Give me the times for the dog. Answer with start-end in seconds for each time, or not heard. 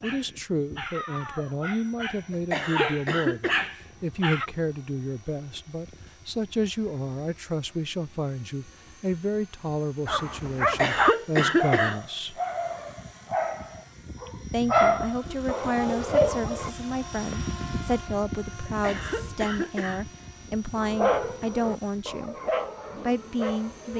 0.0-4.5, 10.1-16.7, 20.8-23.9.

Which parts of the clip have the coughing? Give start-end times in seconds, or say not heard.
2.3-3.7, 10.6-12.0, 18.6-20.0.